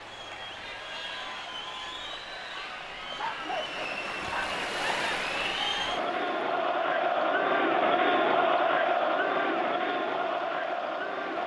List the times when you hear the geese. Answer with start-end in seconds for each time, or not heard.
not heard.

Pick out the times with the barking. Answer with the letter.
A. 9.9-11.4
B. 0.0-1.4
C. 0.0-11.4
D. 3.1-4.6
D.